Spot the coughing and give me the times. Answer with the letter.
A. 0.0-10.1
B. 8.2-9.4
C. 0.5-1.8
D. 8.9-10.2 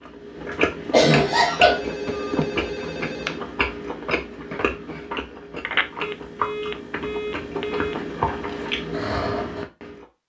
C.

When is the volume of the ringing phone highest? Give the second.
6 s.